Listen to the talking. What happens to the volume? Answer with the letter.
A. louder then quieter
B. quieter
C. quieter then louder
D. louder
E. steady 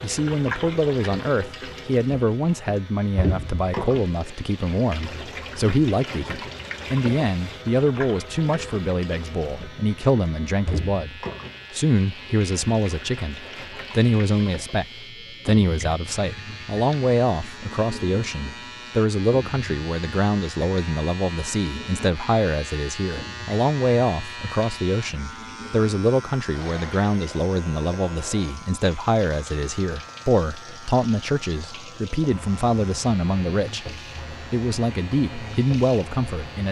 E.